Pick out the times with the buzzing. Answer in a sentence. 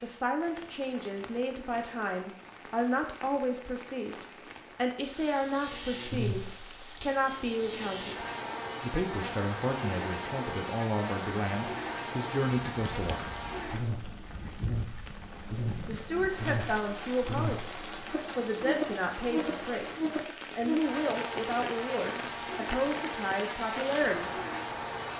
The buzzing can be heard from 5.0 to 25.1 s.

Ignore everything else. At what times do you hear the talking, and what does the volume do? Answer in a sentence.
You can hear the talking from 0.0 to 13.3 s, at a steady volume; and from 15.8 to 24.3 s, at a steady volume.